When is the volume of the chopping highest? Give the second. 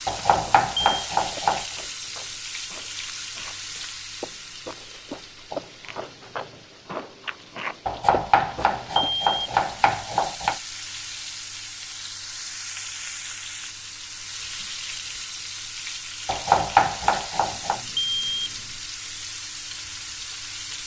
17 s.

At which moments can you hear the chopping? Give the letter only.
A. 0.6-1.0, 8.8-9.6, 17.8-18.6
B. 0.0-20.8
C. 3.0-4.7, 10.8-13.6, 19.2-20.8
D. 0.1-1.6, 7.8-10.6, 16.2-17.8
D.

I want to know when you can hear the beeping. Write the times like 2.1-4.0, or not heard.
0.6-1.0, 8.8-9.6, 17.8-18.6.